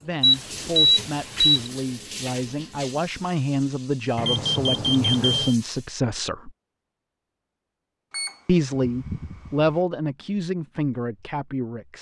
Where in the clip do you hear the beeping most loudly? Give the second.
1 s.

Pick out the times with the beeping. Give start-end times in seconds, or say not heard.
0.2-1.7, 4.2-5.5, 8.1-9.8.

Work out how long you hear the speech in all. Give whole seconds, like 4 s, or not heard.
10 s.